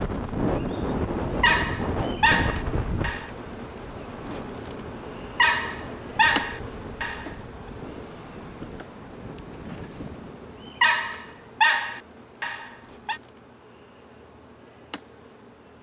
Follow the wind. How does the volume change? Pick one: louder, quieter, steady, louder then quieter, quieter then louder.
quieter.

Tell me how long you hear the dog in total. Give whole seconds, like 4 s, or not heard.
6 s.